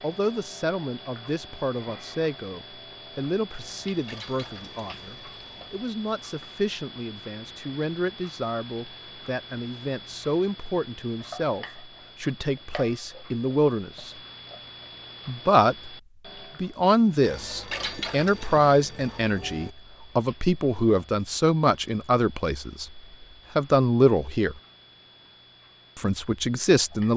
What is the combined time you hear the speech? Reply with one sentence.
You can hear the speech for 24 seconds altogether.